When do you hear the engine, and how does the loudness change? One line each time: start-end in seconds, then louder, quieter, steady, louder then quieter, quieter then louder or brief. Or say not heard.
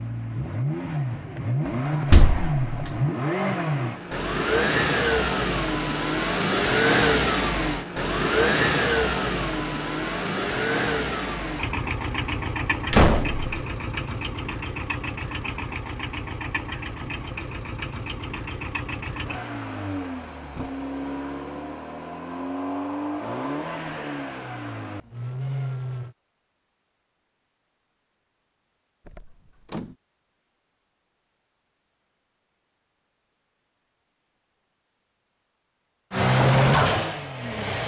0.0-26.1 quieter
36.1-37.8 brief.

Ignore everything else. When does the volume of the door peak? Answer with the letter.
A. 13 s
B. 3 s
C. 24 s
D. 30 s
A.